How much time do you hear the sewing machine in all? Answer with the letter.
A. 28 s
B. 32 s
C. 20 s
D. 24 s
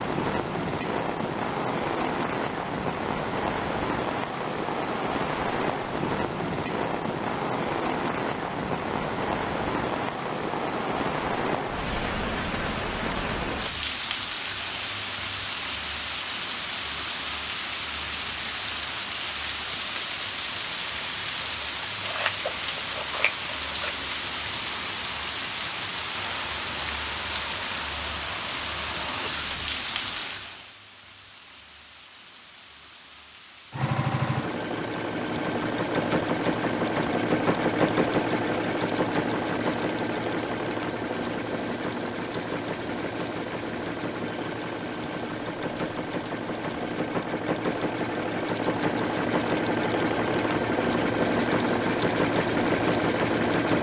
C.